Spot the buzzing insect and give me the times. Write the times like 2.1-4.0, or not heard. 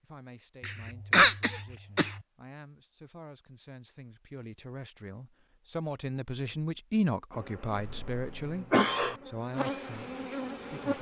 7.3-10.9.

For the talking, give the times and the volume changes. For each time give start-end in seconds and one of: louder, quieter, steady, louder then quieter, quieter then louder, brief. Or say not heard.
0.0-10.9 louder then quieter.